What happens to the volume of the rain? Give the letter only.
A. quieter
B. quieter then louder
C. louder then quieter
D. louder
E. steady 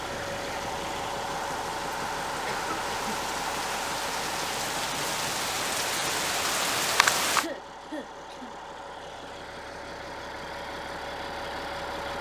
D.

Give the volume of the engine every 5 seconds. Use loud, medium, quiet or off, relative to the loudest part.
loud, medium, loud.